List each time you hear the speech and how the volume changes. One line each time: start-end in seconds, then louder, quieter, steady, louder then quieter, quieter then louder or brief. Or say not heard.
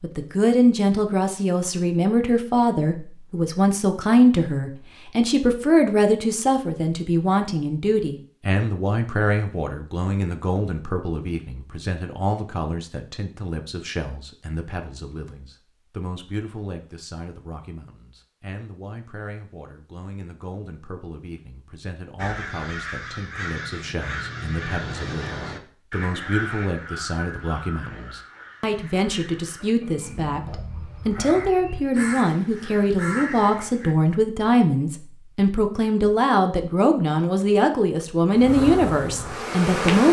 0.0-40.0 quieter then louder.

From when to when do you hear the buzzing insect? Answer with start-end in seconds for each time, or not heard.
38.3-40.0.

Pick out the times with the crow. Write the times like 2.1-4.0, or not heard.
22.1-34.0.